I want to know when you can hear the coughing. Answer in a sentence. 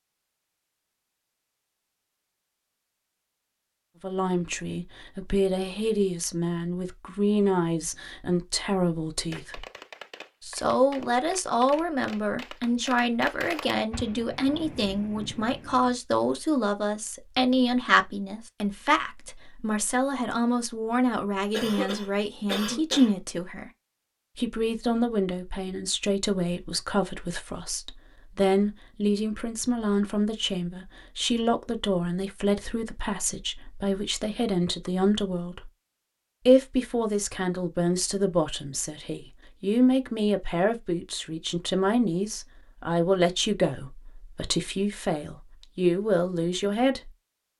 You can hear the coughing from 21.5 to 23.1 s.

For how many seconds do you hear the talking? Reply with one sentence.
You can hear the talking for 41 seconds altogether.